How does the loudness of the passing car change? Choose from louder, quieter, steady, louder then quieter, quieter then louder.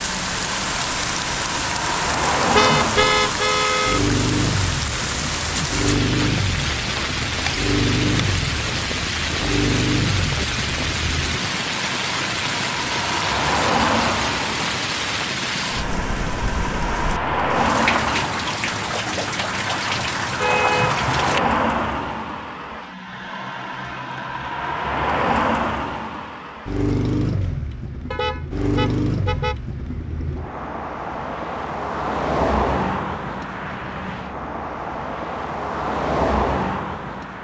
steady.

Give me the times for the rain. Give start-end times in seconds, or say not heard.
0.0-21.4.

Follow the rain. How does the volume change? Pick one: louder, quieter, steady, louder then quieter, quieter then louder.
steady.